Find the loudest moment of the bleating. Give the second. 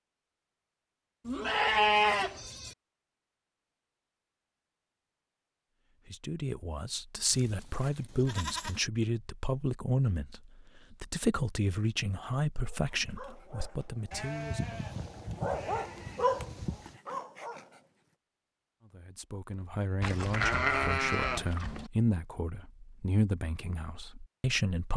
2 s.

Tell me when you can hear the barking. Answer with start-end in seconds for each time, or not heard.
12.6-18.0.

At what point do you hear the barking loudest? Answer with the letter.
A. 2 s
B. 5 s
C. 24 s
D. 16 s
D.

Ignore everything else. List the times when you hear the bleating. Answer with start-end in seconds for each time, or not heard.
1.2-2.8, 7.3-8.8, 14.1-17.0, 20.0-21.9.